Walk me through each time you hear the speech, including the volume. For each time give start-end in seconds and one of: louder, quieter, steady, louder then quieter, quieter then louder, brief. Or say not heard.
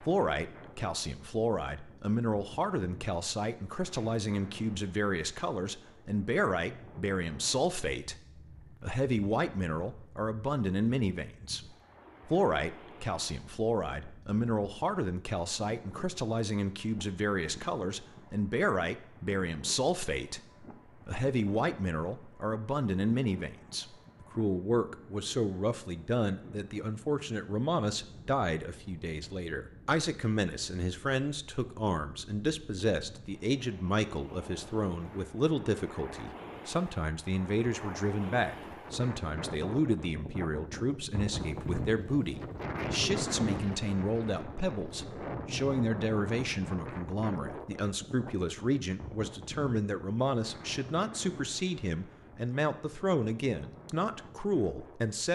0.0-55.3 steady.